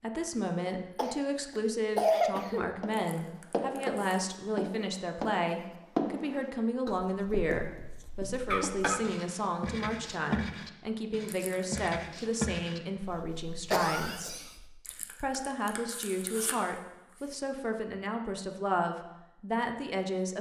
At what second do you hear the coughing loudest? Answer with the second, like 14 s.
2 s.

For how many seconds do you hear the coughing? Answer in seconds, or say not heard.
3 s.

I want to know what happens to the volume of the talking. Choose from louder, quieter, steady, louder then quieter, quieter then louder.
steady.